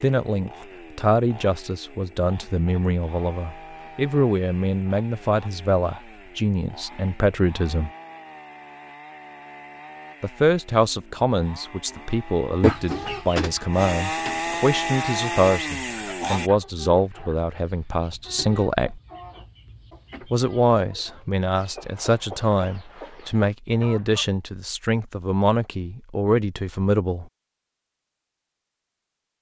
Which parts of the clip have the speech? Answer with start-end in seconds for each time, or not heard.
0.0-7.9, 10.2-19.0, 20.3-27.2.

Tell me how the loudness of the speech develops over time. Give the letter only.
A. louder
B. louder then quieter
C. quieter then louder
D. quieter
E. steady
E.